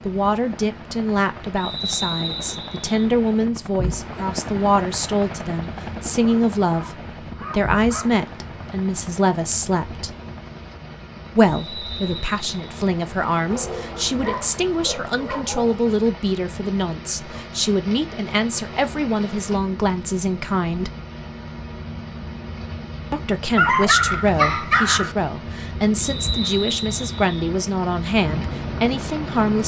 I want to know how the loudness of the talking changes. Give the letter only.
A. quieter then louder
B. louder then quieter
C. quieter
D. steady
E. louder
D.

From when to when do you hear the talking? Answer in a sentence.
You can hear the talking from 0.1 to 10.2 s, from 11.3 to 20.9 s and from 23.1 to 29.6 s.